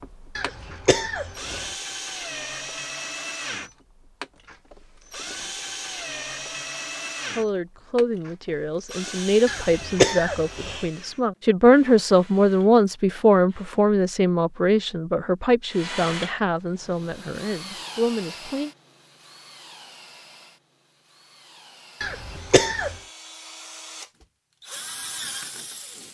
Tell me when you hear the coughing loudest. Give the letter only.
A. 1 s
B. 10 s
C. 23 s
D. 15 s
B.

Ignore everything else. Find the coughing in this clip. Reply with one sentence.
The coughing can be heard from 0.3 to 1.7 s, from 9.4 to 10.8 s and from 22.0 to 22.9 s.